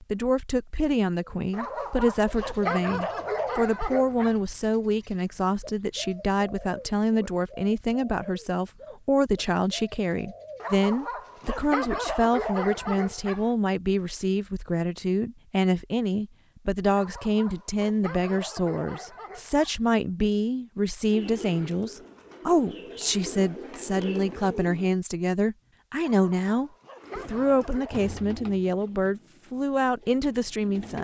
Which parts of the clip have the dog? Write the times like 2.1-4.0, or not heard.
1.5-4.3, 10.6-13.5, 16.9-19.8, 26.0-28.1.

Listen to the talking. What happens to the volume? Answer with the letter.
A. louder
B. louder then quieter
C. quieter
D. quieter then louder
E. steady
E.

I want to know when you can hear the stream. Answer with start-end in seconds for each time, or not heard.
not heard.